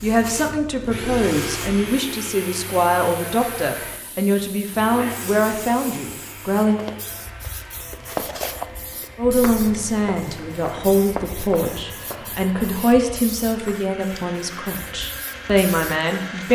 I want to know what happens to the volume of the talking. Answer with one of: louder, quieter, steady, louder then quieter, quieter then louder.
steady.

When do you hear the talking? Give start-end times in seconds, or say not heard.
0.0-6.8, 9.2-16.5.